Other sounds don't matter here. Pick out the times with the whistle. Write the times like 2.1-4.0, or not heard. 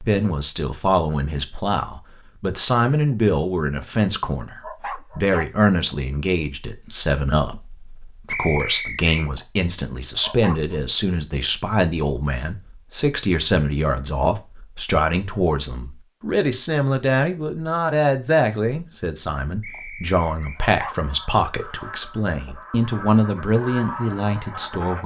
8.2-9.3, 19.6-20.6.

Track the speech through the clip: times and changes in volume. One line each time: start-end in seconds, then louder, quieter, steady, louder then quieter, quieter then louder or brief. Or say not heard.
0.0-25.0 steady.